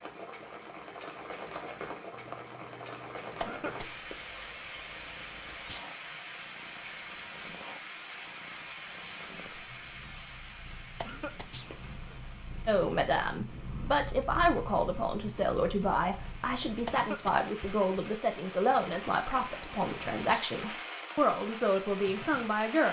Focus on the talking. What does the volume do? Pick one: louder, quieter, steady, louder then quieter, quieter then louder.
steady.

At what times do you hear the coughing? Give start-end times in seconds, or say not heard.
3.4-4.3, 11.0-12.2, 16.9-17.4.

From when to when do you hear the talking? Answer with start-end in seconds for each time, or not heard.
12.7-22.8.